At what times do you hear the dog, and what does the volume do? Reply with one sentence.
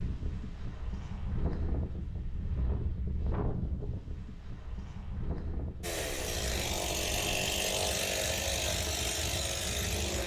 The dog can't be heard in this clip.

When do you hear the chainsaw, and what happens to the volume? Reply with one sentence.
The chainsaw can be heard from 5.8 to 10.2 s, at a steady volume.